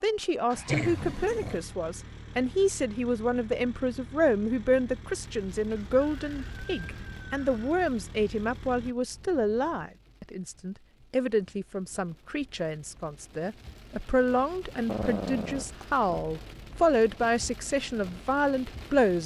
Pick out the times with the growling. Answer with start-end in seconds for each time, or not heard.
0.7-1.6, 14.8-16.2.